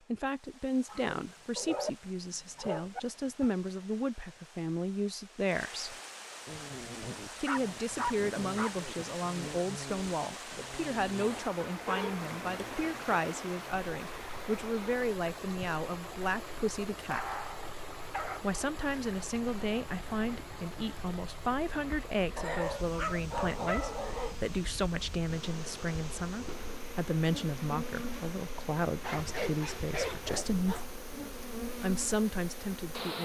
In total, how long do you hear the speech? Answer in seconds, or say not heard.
30 s.